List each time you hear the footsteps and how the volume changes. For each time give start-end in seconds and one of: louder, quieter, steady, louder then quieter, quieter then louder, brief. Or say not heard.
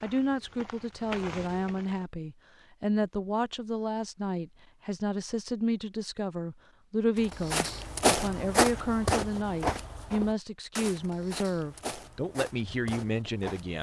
0.0-2.0 brief
7.2-13.7 quieter.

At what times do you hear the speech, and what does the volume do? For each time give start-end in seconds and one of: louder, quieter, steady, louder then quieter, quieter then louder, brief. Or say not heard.
0.0-13.7 steady.